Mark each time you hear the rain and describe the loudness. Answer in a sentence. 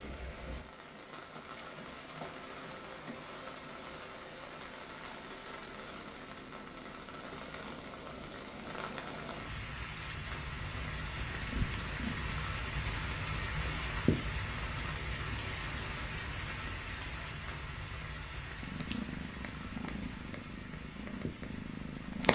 The rain can be heard from 0.0 to 22.3 s, getting louder then quieter.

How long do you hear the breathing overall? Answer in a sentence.
The breathing can't be heard in this clip.